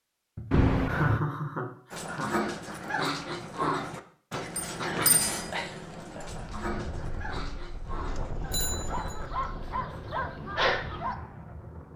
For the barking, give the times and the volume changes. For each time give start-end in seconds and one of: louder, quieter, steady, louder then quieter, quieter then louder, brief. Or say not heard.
1.9-11.2 quieter then louder.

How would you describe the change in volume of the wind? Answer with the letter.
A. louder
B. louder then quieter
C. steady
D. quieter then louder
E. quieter
C.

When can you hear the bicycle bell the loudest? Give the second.
1 s.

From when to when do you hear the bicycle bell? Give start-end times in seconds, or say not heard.
0.5-1.2, 4.5-5.3, 8.5-9.2.